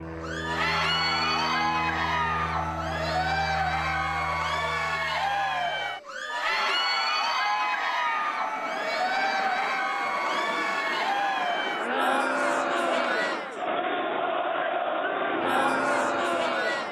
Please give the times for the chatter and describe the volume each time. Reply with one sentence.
The chatter can be heard from 0.1 to 16.8 s, at a steady volume.